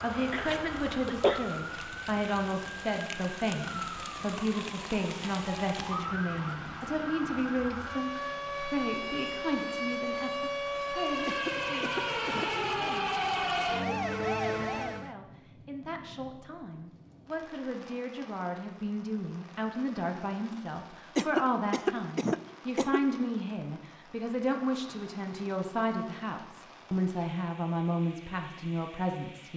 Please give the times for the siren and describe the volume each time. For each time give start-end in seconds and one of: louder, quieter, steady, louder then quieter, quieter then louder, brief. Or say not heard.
0.0-15.1 louder.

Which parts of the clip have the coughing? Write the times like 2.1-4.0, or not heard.
0.3-1.4, 11.2-12.4, 21.1-23.0.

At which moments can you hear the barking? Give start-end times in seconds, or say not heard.
not heard.